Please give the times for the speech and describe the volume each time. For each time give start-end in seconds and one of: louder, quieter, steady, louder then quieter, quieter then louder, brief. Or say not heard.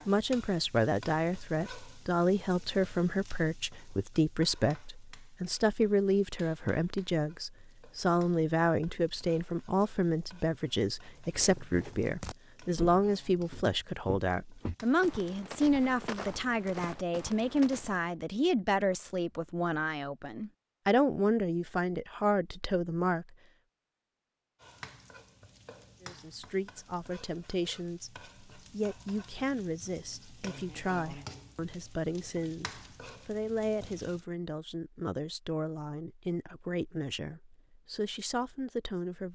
0.1-23.2 steady
26.0-39.3 steady.